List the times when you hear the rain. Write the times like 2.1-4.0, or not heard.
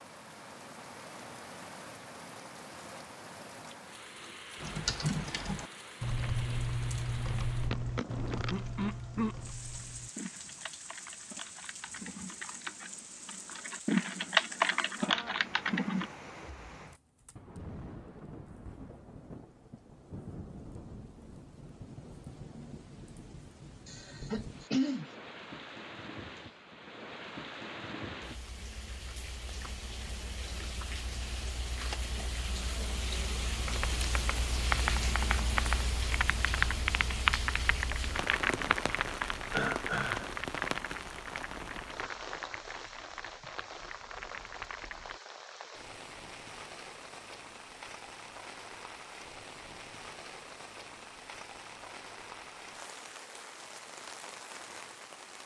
0.0-55.4.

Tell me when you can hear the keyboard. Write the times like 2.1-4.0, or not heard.
4.6-16.1, 33.6-45.1.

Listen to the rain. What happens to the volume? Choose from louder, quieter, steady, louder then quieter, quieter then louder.
louder then quieter.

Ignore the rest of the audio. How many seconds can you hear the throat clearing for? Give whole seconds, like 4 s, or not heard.
4 s.